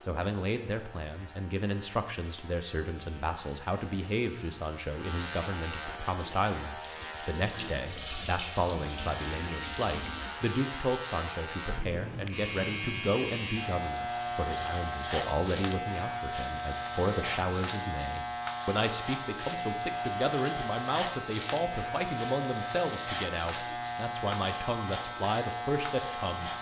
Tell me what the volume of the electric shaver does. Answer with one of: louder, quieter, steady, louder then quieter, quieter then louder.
louder.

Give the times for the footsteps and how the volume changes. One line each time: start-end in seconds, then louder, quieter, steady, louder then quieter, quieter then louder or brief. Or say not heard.
not heard.